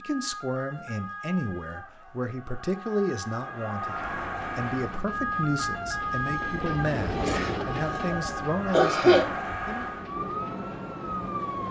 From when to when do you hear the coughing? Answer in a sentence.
You can hear the coughing from 7.2 to 9.2 s.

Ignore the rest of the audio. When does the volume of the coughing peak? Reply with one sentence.
The volume of the coughing peaks at 9 seconds.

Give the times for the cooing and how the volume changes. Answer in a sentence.
The cooing can't be heard in this clip.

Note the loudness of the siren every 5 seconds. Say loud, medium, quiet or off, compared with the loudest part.
medium, loud, loud.